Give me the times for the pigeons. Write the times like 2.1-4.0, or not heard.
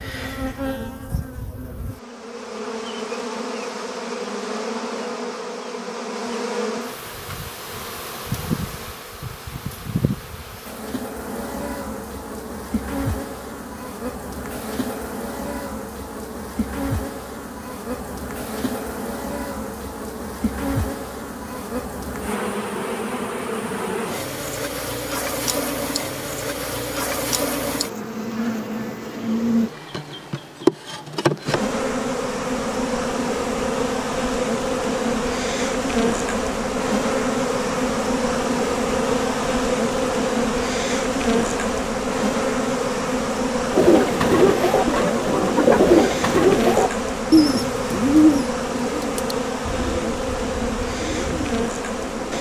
43.7-52.3.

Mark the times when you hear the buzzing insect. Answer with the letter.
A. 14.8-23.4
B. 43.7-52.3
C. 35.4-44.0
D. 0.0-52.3
D.